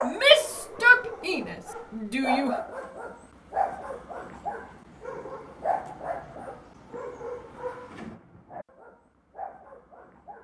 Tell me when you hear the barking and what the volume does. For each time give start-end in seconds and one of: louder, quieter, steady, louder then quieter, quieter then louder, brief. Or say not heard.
0.0-10.3 louder then quieter.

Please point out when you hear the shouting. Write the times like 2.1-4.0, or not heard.
0.0-2.5.